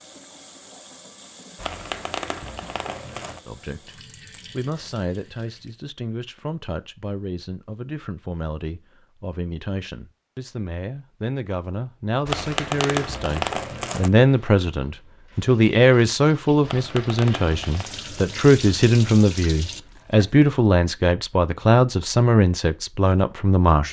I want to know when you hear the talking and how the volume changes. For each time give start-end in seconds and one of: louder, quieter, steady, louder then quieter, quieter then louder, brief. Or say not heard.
3.5-23.8 louder.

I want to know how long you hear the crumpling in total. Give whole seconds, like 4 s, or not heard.
5 s.